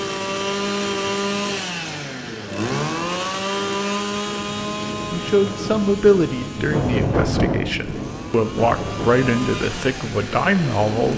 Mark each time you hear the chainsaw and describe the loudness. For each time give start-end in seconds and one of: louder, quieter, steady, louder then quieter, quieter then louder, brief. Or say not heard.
0.0-11.1 quieter then louder.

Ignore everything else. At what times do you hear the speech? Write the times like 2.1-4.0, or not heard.
5.1-11.1.